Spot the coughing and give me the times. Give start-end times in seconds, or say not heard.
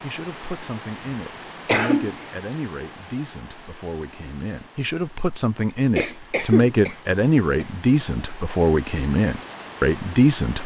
1.6-2.1, 6.0-7.7.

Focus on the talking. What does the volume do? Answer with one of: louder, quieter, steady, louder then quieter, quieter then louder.
louder.